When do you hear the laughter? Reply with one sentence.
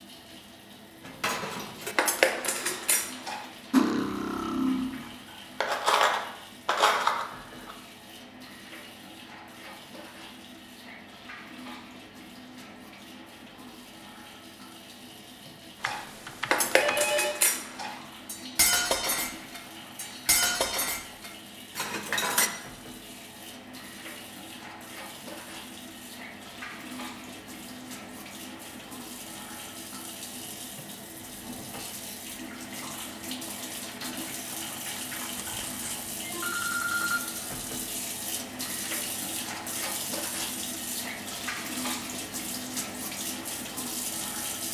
You can't hear the laughter here.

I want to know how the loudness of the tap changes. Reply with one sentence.
The loudness of the tap goes up.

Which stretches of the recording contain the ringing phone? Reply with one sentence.
The ringing phone can be heard from 15.8 to 17.4 s and from 35.4 to 37.2 s.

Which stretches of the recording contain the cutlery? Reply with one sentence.
The cutlery can be heard from 1.1 to 7.8 s and from 15.8 to 22.5 s.